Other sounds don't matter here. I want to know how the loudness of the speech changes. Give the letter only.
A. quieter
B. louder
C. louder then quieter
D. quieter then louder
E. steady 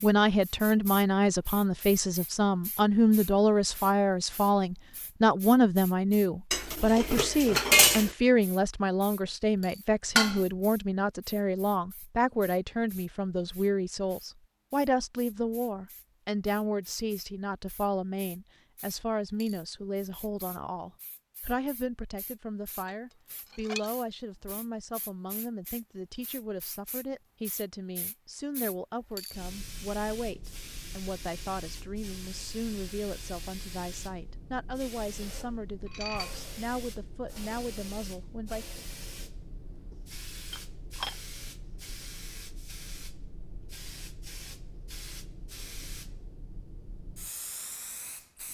A.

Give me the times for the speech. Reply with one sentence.
The speech can be heard from 0.0 to 38.9 s.